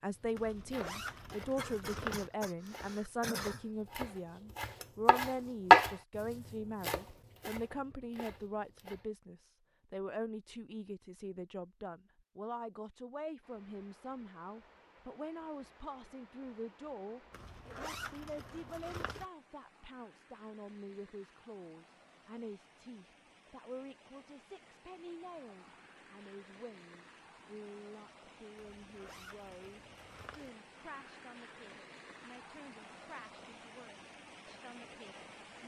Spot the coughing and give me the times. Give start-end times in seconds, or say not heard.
1.6-3.6.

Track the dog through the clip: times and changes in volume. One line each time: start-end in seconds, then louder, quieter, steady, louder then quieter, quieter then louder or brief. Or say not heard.
not heard.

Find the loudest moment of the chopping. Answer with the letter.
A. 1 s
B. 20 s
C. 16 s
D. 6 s
D.